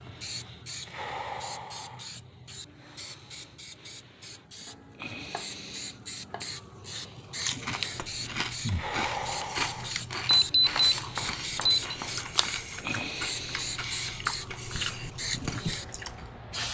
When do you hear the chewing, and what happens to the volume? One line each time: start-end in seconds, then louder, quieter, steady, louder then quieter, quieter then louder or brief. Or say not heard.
7.3-16.4 steady.